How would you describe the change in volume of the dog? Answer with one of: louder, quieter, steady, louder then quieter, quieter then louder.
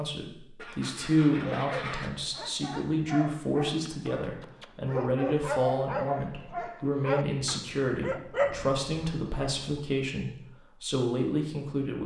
louder.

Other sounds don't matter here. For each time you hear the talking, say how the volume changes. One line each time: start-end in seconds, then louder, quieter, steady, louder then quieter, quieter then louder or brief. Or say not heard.
0.0-12.0 steady.